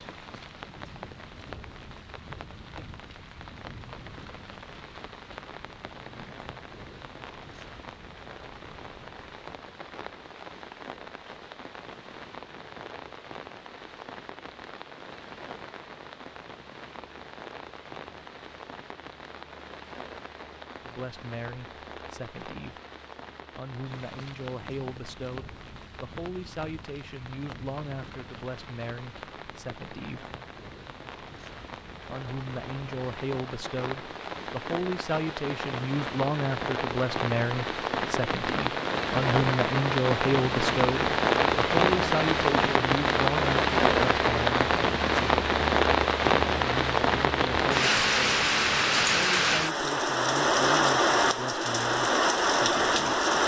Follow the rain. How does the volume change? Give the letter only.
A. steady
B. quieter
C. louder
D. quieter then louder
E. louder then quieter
C.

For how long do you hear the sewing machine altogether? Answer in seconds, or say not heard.
not heard.